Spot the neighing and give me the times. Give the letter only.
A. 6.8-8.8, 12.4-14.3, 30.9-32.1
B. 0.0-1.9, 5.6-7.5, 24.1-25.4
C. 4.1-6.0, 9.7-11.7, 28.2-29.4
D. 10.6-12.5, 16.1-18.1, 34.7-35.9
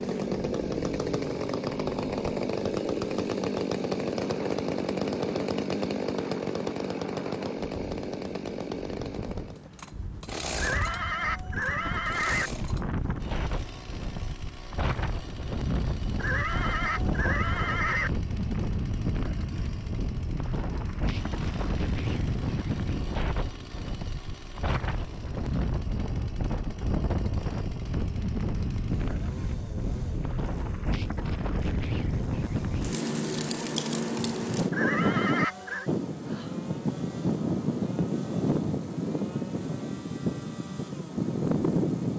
D.